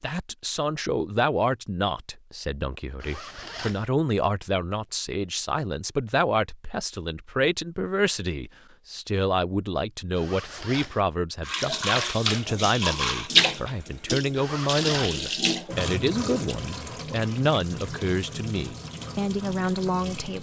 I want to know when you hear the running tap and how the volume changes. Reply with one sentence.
The running tap can be heard from 11.4 to 20.3 s, getting quieter.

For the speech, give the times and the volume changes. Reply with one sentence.
You can hear the speech from 0.0 to 20.3 s, at a steady volume.